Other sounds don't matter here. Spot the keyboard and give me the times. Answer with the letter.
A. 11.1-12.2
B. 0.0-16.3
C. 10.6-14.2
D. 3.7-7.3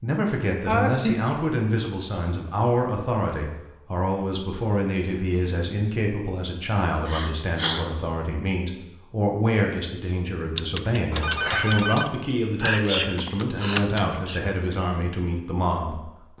C.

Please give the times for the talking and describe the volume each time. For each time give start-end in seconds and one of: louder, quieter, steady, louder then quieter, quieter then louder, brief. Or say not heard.
0.0-16.3 steady.